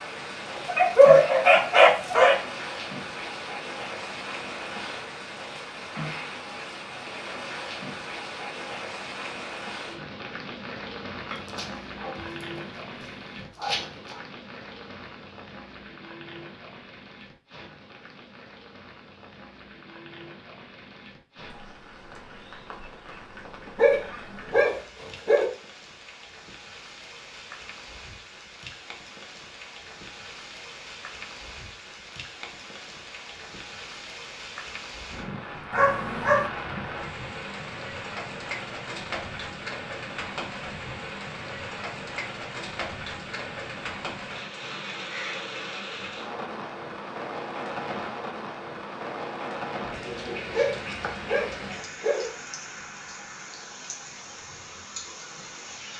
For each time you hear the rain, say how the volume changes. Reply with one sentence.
You can hear the rain from 0.0 to 55.9 s, getting quieter then louder.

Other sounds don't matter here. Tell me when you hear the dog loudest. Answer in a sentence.
The loudest moment of the dog is at 1 second.